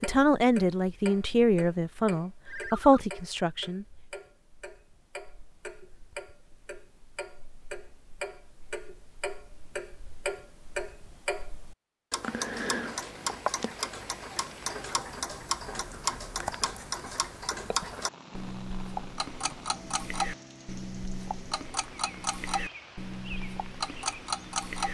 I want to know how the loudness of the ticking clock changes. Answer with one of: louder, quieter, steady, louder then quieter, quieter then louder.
louder.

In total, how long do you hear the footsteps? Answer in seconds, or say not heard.
not heard.